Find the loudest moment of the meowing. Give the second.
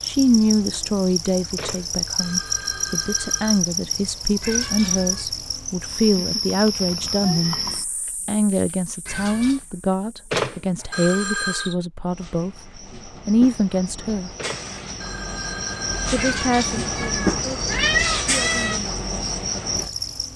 18 s.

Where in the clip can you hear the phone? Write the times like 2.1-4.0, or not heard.
1.6-3.6, 10.3-11.8, 14.3-16.2.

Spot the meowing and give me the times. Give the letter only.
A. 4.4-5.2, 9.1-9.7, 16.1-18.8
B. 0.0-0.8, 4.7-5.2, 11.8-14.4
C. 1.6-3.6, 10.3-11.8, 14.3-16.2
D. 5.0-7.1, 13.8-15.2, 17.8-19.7
A.